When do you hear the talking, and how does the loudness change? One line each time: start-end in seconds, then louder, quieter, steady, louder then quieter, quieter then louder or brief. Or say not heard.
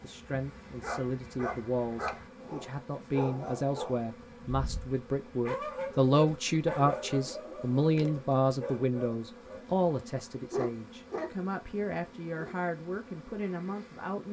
0.0-14.2 louder then quieter.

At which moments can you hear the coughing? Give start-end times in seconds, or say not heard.
not heard.